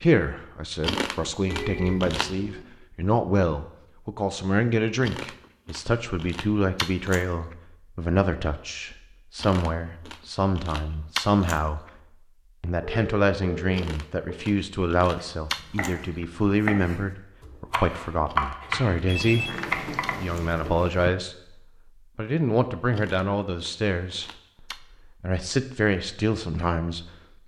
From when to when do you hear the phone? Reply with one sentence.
The phone can be heard from 1.4 to 2.6 s, from 12.8 to 14.4 s and from 19.1 to 21.1 s.